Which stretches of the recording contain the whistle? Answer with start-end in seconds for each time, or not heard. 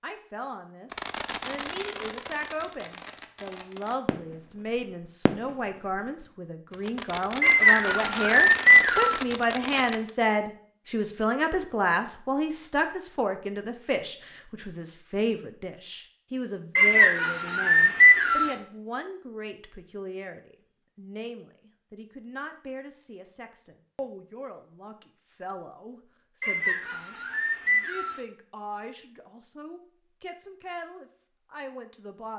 7.4-9.2, 16.8-18.6, 26.4-28.2.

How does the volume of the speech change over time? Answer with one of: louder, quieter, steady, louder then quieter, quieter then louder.
louder then quieter.